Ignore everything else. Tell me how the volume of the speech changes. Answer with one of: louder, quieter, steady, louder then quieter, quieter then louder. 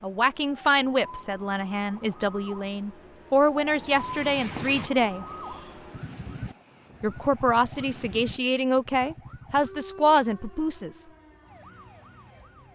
steady.